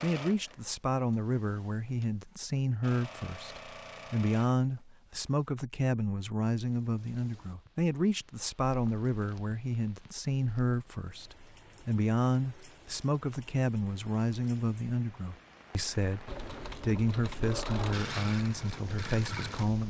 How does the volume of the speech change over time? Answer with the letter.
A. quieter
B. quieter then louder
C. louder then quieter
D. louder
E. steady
E.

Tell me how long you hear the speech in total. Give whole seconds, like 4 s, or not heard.
20 s.